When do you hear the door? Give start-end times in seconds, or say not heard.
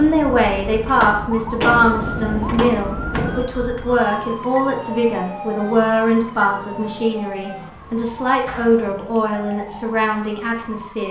0.8-3.4, 8.4-8.9.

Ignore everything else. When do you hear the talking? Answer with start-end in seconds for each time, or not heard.
0.0-11.0.